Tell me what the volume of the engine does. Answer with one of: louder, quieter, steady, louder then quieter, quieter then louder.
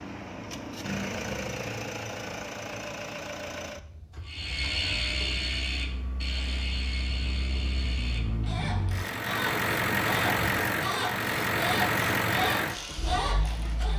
quieter then louder.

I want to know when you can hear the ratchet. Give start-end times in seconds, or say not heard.
4.2-13.9.